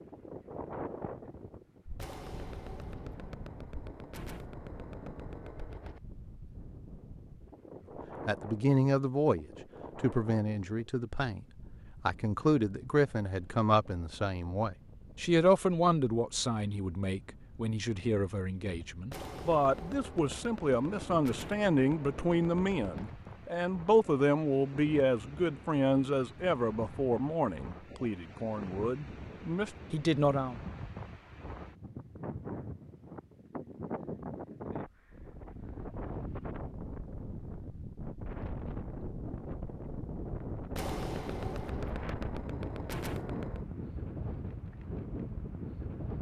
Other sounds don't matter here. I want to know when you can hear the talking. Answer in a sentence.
The talking can be heard from 8.2 to 30.6 s.